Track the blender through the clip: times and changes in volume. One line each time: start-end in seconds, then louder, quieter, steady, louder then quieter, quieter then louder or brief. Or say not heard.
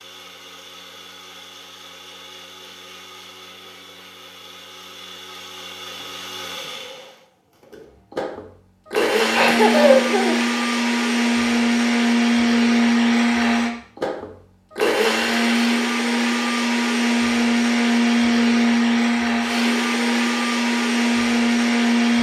0.0-22.1 louder.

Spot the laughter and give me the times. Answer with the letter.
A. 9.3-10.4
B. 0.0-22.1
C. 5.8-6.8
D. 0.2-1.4
A.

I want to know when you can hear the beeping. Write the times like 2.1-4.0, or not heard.
not heard.